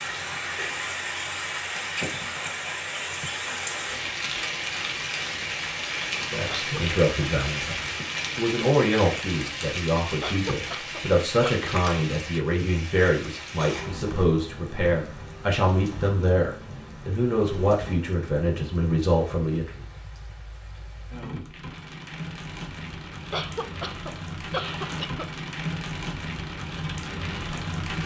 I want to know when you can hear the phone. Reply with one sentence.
You can't hear the phone here.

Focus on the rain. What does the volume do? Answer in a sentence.
The loudness of the rain goes down, then up.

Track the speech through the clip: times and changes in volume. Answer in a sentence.
You can hear the speech from 6.3 to 19.8 s, at a steady volume.